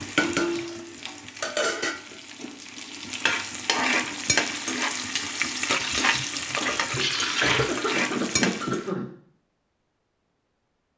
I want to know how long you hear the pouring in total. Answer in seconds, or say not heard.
2 s.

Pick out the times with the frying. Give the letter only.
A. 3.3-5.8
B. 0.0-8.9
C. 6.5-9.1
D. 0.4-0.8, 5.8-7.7
B.